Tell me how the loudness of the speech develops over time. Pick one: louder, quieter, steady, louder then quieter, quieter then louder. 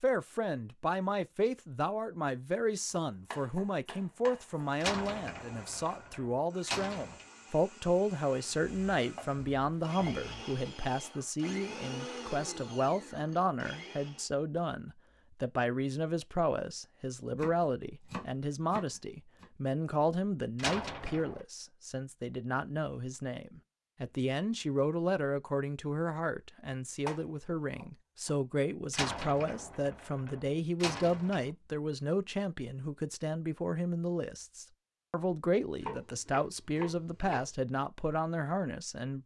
steady.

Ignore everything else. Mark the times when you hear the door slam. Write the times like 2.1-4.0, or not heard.
4.8-7.2, 20.6-21.4, 28.9-31.5.